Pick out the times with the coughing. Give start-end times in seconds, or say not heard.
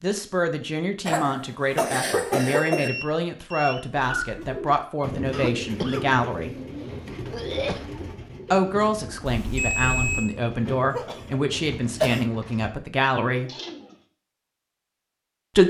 1.1-2.9, 5.3-7.8, 10.9-12.2.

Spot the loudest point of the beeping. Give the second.
10 s.